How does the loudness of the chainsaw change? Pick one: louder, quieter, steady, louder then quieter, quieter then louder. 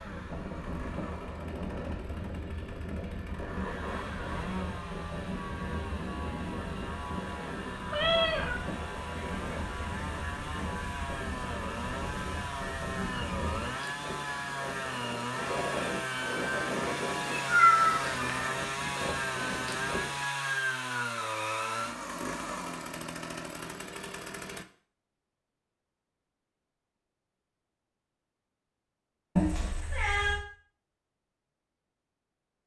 louder.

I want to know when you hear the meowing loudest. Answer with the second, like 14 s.
18 s.